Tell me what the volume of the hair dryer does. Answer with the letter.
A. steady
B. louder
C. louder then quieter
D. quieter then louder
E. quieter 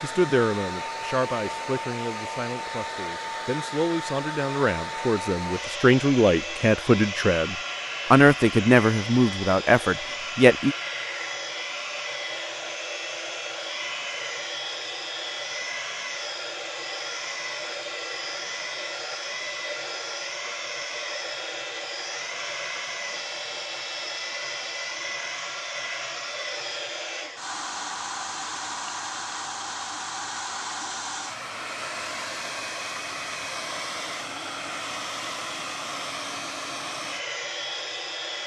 A.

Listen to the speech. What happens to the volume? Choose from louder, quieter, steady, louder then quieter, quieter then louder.
louder.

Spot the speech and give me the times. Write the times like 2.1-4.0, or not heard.
0.0-10.8.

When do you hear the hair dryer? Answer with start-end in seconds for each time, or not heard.
0.0-38.4.